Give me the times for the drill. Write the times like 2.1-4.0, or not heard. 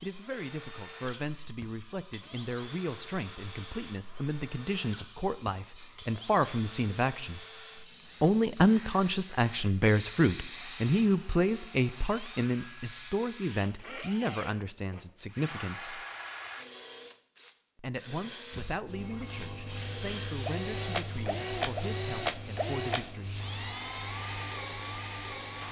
0.0-25.6.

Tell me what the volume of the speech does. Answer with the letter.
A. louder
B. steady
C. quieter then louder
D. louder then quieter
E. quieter
D.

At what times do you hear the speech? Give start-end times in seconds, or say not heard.
0.0-7.4, 8.2-16.0, 17.8-23.4.